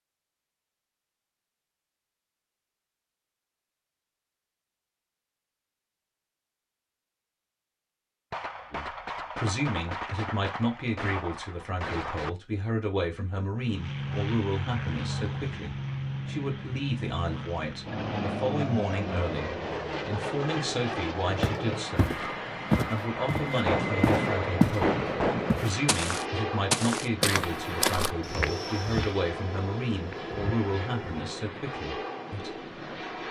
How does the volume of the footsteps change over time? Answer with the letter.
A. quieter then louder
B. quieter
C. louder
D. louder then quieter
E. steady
B.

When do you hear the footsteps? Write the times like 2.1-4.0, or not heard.
21.4-24.8, 25.4-31.2.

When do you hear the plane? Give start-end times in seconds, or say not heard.
13.6-33.2.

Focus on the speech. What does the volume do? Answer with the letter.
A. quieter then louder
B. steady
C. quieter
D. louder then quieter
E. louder
B.